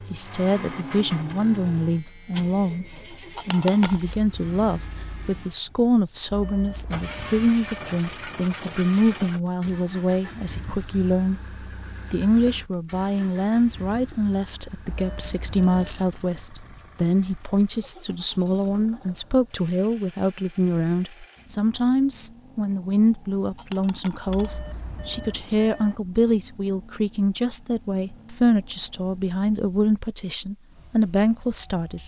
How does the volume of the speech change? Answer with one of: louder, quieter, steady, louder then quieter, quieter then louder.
steady.